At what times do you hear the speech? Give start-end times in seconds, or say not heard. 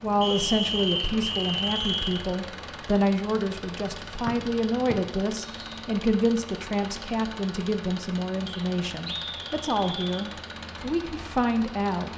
0.0-12.1.